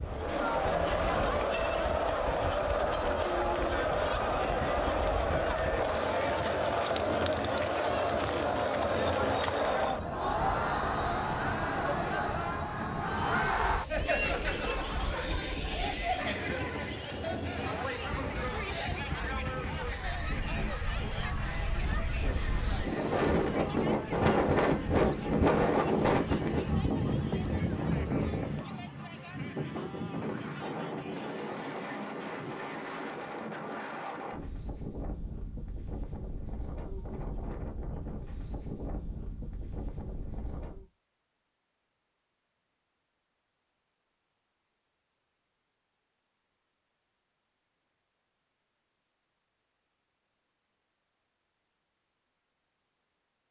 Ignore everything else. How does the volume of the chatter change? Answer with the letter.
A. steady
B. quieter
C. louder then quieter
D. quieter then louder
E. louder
B.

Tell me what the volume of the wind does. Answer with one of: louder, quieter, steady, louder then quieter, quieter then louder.
louder then quieter.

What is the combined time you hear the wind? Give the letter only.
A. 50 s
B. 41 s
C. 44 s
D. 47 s
B.